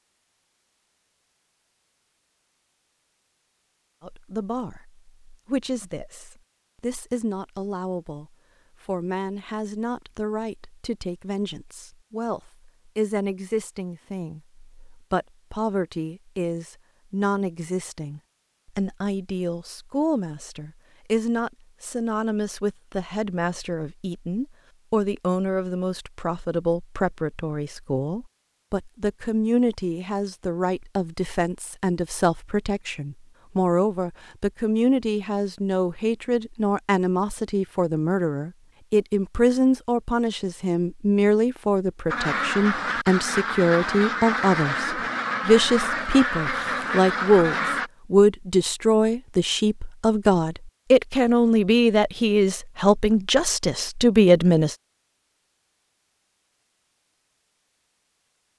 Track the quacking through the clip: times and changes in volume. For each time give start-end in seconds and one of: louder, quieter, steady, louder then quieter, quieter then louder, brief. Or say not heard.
42.0-47.9 steady.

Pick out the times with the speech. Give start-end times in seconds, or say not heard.
4.0-54.8.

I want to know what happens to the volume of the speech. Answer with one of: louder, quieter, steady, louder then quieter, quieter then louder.
louder.